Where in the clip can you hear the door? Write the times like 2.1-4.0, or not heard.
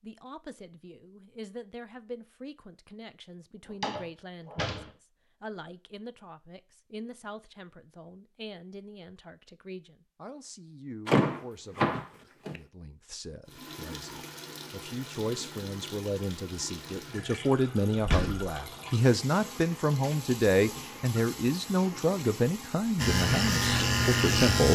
3.6-4.9, 11.1-12.6, 17.9-18.6.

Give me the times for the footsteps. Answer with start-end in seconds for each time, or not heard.
not heard.